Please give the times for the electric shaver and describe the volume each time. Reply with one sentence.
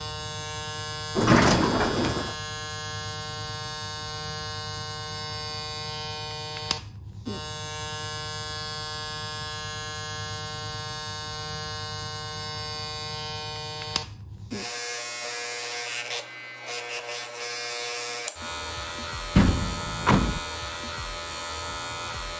The electric shaver can be heard from 0.0 to 22.3 s, at a steady volume.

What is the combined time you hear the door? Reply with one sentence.
You can hear the door for 2 seconds altogether.